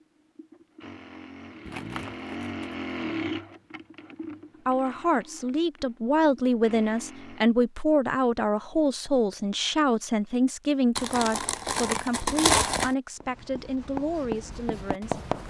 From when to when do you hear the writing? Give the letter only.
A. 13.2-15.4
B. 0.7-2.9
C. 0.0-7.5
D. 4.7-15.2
A.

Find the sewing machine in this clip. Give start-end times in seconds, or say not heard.
0.0-7.5.